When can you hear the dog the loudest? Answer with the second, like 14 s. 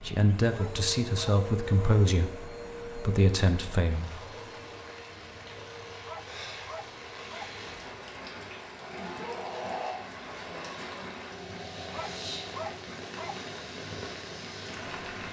13 s.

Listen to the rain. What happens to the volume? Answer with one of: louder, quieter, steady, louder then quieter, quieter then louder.
louder.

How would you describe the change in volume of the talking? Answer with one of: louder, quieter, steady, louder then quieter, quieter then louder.
quieter then louder.